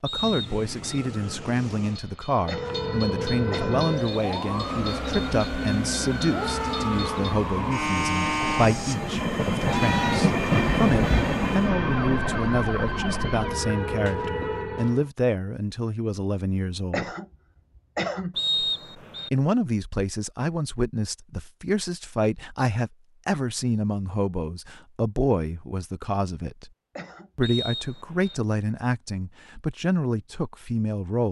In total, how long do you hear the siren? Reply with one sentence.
You can hear the siren for 13 seconds altogether.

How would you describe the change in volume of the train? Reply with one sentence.
The volume of the train goes up.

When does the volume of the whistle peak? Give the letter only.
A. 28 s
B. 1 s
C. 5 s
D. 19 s
D.